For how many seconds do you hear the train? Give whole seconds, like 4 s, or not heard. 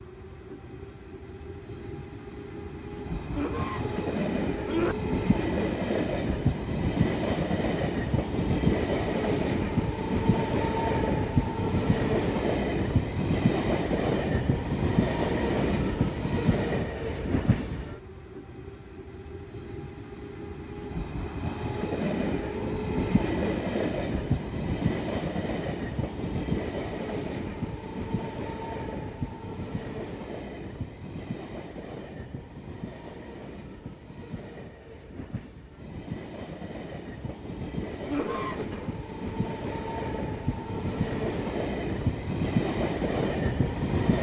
44 s.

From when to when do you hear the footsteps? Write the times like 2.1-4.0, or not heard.
not heard.